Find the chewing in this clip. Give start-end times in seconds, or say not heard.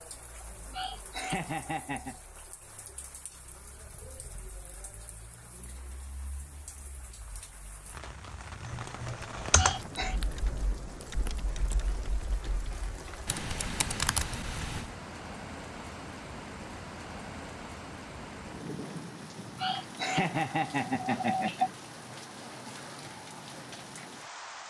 not heard.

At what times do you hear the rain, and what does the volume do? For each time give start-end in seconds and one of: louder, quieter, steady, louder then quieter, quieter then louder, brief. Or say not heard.
0.0-24.6 louder.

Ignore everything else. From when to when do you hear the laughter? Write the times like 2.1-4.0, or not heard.
0.7-2.2, 9.6-10.2, 19.6-21.7.